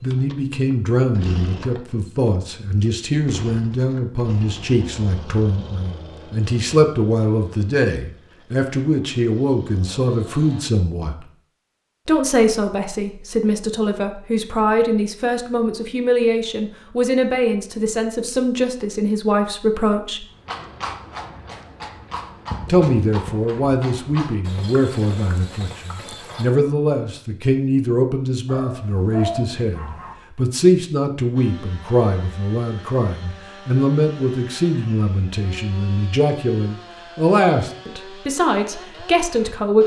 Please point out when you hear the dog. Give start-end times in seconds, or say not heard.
28.4-30.1.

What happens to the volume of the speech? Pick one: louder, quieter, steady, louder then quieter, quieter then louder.
steady.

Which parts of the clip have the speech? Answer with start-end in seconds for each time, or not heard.
0.0-11.2, 12.1-20.2, 22.6-39.8.